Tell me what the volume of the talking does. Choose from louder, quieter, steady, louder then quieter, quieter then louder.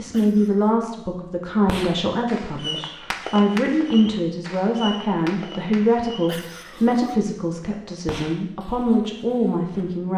steady.